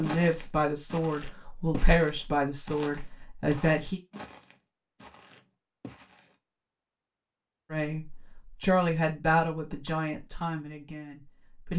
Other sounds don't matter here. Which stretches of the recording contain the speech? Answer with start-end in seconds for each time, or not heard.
0.0-4.0, 7.7-11.7.